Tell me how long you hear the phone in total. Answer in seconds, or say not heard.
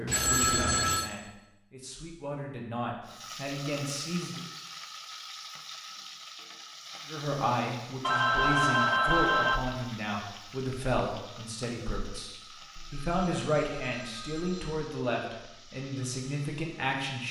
5 s.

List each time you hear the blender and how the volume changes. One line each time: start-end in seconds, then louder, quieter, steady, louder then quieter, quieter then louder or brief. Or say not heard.
not heard.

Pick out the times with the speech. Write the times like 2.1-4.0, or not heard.
0.0-4.4, 7.0-17.2.